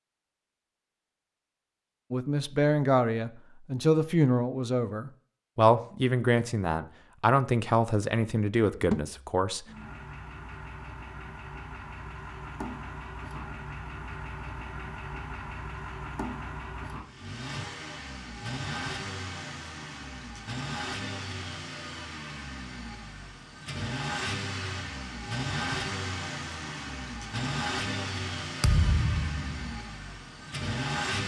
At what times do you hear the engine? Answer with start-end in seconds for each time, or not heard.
9.7-31.2.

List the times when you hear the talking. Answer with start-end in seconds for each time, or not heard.
2.1-9.7.